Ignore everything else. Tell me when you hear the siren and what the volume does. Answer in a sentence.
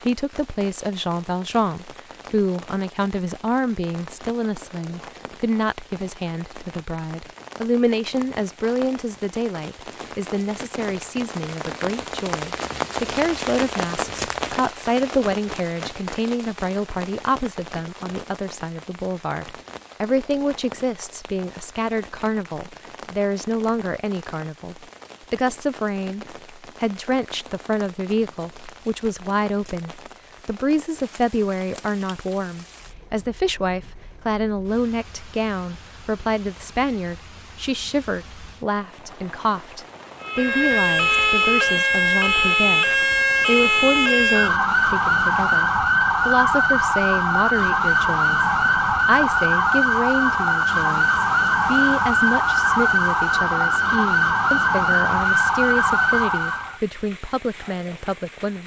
The siren can be heard from 40.2 to 56.8 s, at a steady volume.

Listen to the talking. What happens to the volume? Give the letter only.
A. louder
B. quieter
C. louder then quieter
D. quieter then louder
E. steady
E.